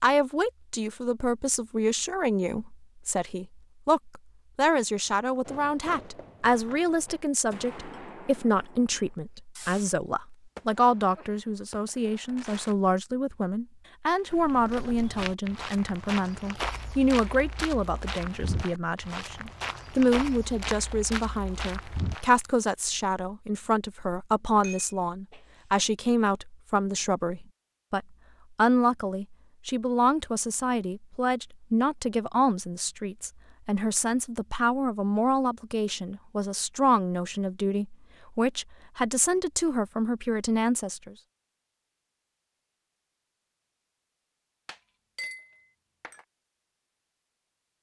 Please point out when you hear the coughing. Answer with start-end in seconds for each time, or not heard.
not heard.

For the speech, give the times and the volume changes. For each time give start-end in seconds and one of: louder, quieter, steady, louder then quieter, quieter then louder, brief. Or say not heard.
0.0-41.1 steady.